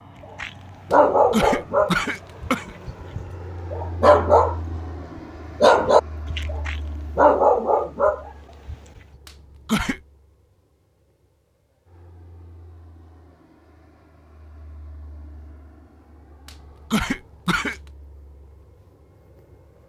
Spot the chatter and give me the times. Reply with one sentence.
You can't hear the chatter here.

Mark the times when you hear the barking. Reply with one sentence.
You can hear the barking from 0.4 to 4.8 s and from 5.6 to 8.8 s.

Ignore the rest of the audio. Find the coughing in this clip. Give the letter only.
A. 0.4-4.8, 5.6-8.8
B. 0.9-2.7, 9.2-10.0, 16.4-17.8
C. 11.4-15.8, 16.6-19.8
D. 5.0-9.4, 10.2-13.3
B.